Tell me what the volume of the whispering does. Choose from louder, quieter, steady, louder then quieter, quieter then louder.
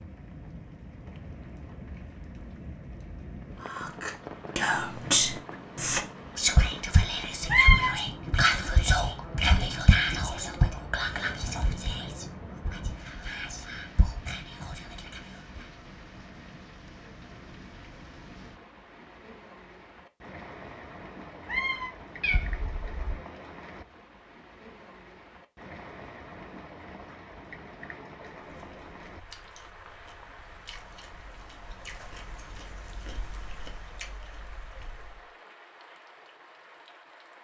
quieter.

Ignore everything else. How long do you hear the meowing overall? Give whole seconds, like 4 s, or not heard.
2 s.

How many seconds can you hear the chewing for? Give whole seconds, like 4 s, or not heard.
7 s.